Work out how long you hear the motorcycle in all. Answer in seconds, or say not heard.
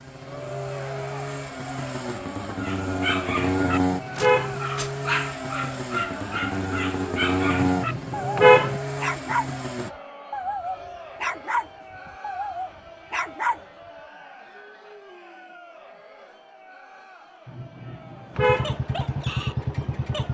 12 s.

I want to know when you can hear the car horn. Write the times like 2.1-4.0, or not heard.
3.3-4.6, 7.5-8.8, 17.4-18.8.